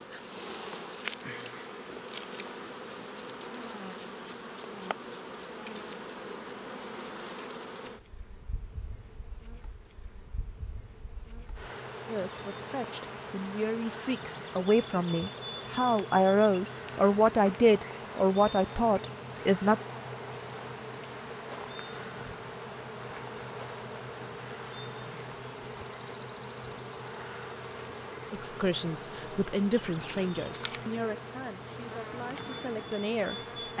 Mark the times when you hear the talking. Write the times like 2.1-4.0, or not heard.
12.1-19.8, 28.3-33.7.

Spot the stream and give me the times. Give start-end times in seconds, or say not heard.
not heard.